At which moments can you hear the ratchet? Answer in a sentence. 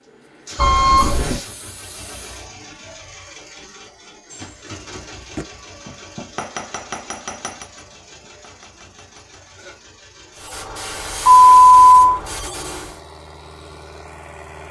The ratchet can't be heard in this clip.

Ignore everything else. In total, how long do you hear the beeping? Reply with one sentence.
The beeping can be heard for 2 seconds in total.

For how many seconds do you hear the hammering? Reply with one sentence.
You can hear the hammering for 5 seconds altogether.